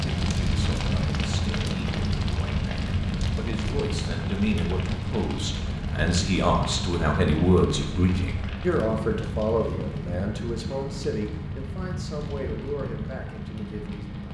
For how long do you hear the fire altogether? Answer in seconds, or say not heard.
14 s.